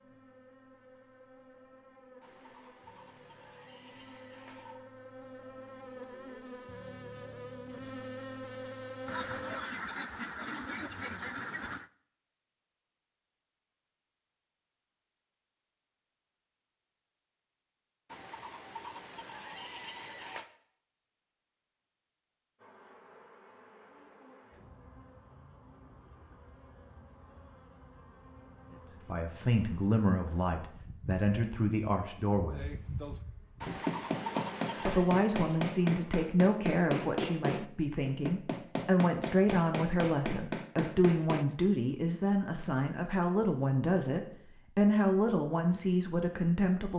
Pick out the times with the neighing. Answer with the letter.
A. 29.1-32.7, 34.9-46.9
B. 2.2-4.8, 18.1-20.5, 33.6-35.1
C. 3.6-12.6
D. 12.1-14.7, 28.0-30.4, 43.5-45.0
B.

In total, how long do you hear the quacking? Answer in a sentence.
You can hear the quacking for 3 seconds altogether.